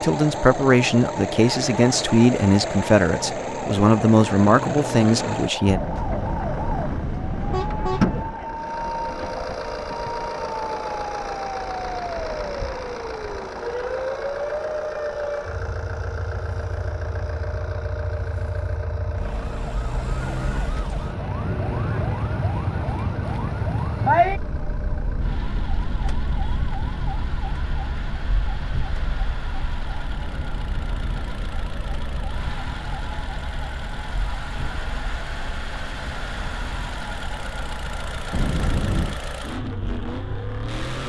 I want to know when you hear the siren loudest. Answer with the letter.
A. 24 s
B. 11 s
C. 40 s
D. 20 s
A.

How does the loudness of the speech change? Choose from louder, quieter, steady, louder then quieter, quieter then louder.
steady.